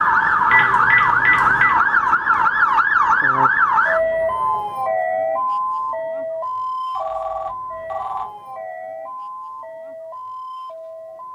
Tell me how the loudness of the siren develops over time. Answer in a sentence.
The loudness of the siren goes down.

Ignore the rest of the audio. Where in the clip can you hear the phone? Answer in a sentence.
You can hear the phone from 0.5 to 1.7 s and from 7.0 to 8.2 s.